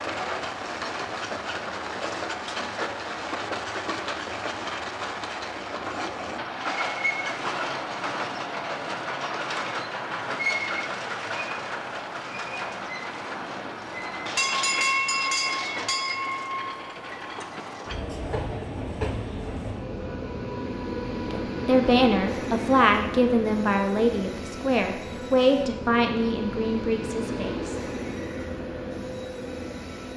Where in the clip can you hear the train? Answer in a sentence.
You can hear the train from 0.0 to 30.1 s.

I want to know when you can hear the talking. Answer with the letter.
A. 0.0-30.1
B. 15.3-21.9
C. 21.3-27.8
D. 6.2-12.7
C.